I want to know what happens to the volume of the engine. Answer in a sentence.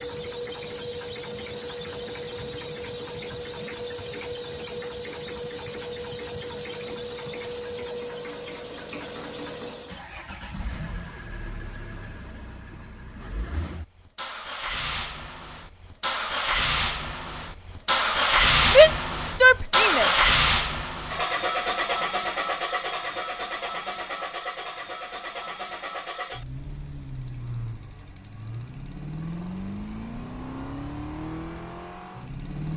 The loudness of the engine goes up, then down.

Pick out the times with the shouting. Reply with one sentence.
You can hear the shouting from 18.6 to 20.1 s.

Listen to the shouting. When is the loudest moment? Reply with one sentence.
The loudest moment of the shouting is at 19 seconds.